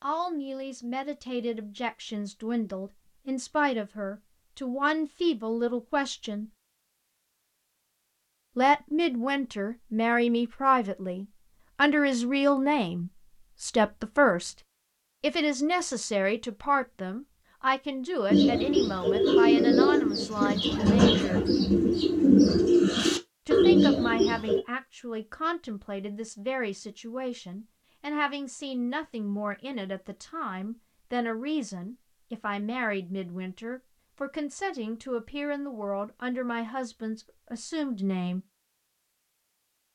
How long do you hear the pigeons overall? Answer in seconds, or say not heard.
6 s.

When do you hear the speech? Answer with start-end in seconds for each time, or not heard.
0.0-6.5, 8.6-14.6, 15.2-21.4, 23.4-38.4.